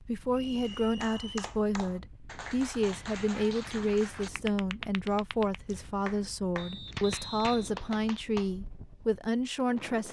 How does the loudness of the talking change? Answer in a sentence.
The loudness of the talking stays about the same.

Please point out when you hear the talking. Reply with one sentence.
You can hear the talking from 0.1 to 10.0 s.